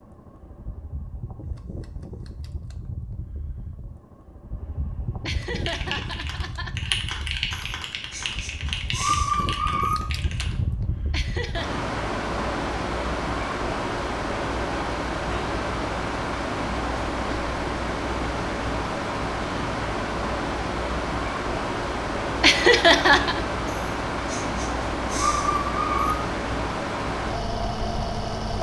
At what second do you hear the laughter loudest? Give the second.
23 s.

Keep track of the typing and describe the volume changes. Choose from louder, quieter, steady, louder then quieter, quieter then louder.
louder then quieter.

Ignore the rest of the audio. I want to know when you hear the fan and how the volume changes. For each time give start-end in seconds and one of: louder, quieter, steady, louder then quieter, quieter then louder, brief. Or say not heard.
0.0-28.5 louder.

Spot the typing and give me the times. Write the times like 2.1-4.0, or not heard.
5.6-10.6.